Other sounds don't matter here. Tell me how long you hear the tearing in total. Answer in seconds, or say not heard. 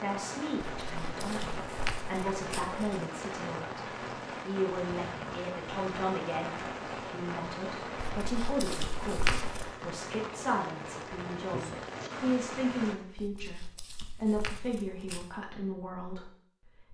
6 s.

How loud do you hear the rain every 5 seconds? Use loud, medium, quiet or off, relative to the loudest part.
loud, loud, loud, off.